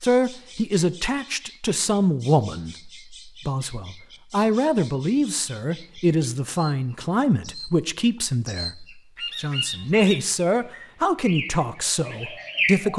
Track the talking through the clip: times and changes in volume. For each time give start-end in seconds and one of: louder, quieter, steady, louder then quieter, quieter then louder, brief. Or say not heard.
0.0-12.9 steady.